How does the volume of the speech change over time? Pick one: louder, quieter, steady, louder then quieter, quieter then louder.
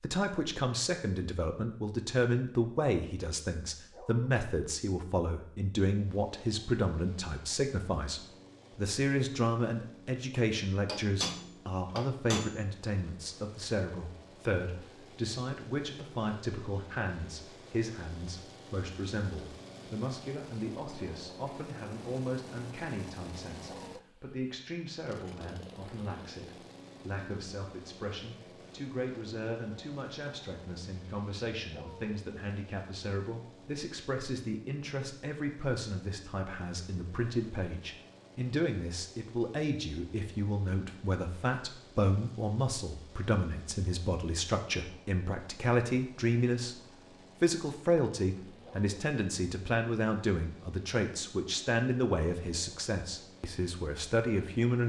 quieter then louder.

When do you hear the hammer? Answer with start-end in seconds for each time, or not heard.
10.8-12.7.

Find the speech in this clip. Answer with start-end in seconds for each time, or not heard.
0.0-46.8, 47.4-54.8.